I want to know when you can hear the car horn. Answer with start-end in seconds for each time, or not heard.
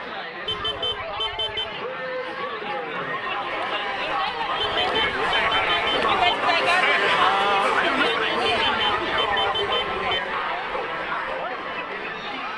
0.5-1.8, 4.5-6.3, 8.4-10.2.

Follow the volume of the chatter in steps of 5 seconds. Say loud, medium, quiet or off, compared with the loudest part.
medium, loud, medium.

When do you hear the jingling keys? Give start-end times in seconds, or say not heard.
not heard.